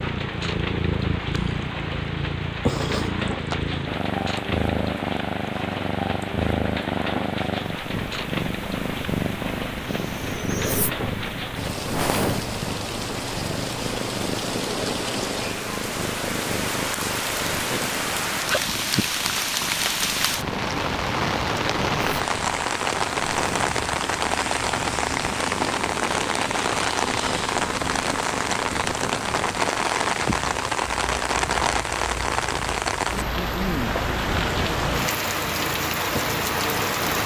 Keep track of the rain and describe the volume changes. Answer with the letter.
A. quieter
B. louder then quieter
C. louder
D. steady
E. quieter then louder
C.